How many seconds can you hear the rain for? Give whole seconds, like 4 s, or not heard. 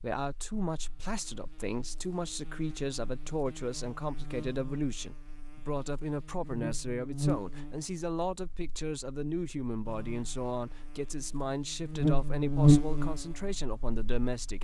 not heard.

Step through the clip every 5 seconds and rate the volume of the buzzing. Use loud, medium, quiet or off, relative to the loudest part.
quiet, medium, loud.